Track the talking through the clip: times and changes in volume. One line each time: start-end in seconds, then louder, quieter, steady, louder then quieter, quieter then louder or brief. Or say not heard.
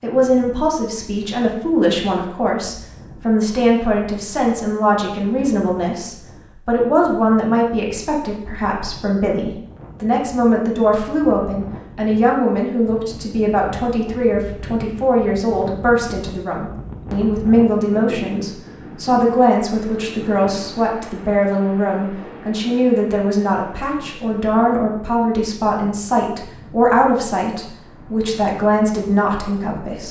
0.0-30.0 steady.